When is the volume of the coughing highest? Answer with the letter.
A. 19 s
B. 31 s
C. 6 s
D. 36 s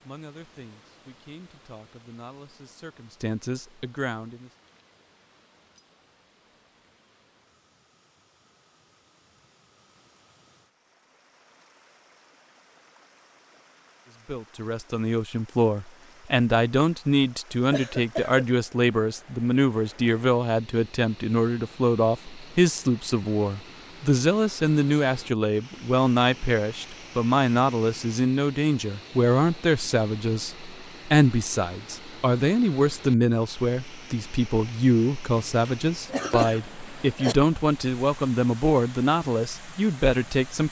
D.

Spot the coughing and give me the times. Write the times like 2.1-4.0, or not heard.
17.7-18.5, 35.4-37.4.